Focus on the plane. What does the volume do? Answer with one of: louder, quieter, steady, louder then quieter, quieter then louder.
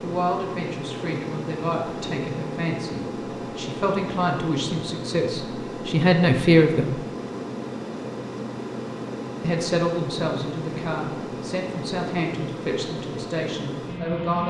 steady.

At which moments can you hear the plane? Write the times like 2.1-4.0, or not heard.
0.0-14.4.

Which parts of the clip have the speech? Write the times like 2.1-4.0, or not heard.
0.0-7.0, 9.4-14.4.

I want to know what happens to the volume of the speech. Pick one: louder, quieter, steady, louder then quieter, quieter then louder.
louder then quieter.